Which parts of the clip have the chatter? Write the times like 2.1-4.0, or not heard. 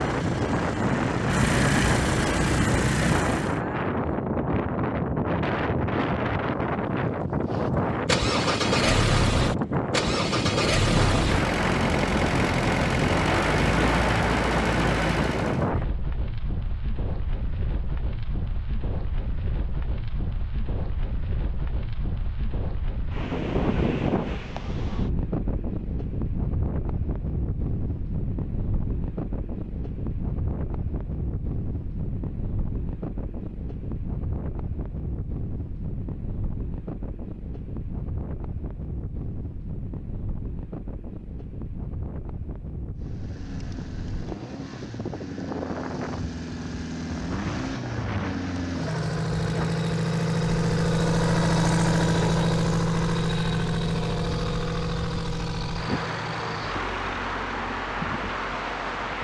not heard.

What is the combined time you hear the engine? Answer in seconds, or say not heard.
28 s.